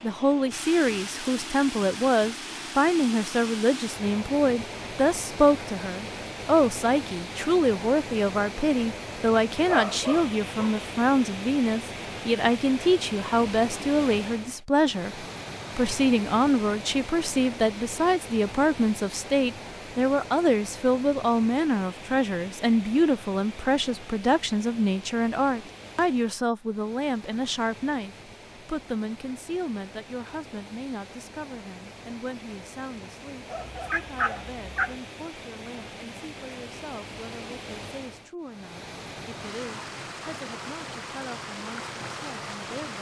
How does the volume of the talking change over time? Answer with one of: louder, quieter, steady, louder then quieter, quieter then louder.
quieter.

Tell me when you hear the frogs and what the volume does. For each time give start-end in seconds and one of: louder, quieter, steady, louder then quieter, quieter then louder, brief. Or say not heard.
not heard.